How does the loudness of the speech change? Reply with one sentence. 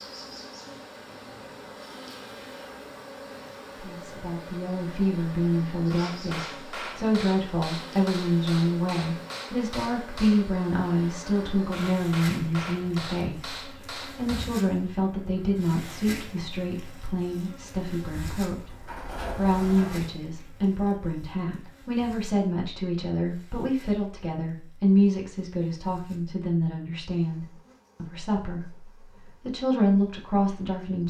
The loudness of the speech stays about the same.